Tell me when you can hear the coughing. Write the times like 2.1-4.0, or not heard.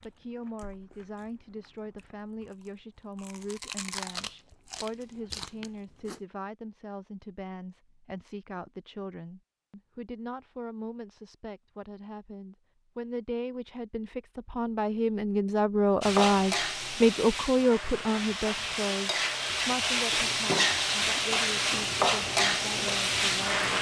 not heard.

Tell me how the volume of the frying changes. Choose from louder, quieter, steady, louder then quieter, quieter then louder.
louder.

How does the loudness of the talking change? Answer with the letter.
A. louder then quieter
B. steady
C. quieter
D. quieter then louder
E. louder
A.